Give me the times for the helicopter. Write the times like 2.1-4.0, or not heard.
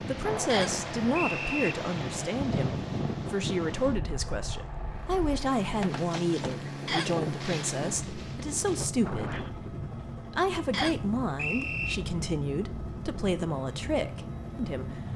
0.1-15.1.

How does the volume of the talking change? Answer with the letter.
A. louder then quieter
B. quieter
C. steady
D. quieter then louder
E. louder
C.